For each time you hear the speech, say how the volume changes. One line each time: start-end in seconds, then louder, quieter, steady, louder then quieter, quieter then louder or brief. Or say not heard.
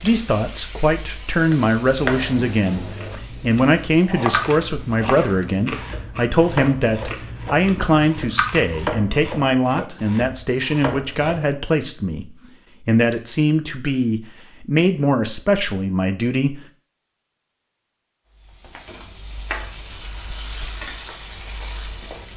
0.0-16.6 steady.